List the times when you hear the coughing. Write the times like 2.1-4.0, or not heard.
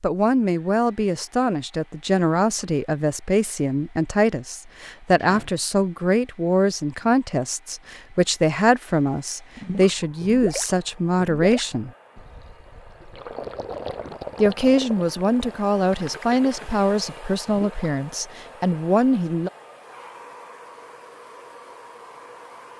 not heard.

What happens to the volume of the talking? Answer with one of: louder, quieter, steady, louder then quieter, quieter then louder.
steady.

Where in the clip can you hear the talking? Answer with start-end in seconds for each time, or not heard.
0.0-11.9, 14.3-19.5.